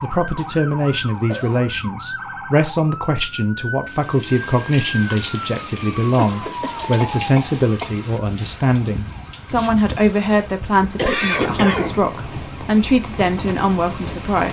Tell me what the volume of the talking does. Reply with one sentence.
The volume of the talking stays about the same.